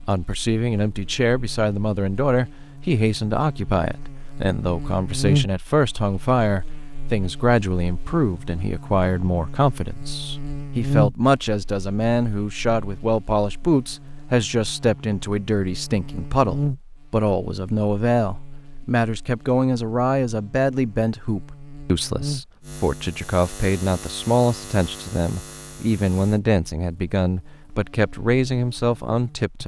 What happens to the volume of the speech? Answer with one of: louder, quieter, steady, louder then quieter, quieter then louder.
steady.